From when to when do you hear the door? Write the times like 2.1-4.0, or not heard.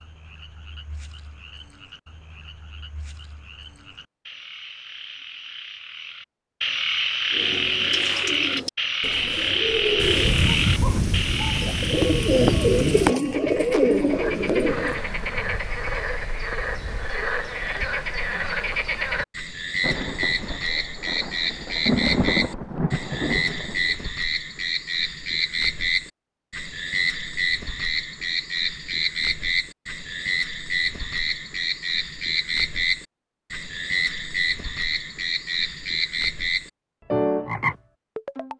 not heard.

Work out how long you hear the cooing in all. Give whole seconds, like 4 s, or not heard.
8 s.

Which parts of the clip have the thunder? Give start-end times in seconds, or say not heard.
9.9-13.2, 19.8-24.1.